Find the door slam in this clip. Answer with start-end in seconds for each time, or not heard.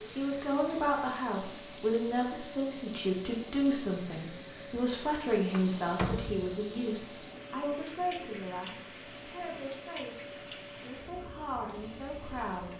5.5-6.7.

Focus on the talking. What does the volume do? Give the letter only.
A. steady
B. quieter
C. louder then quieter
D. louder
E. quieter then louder
B.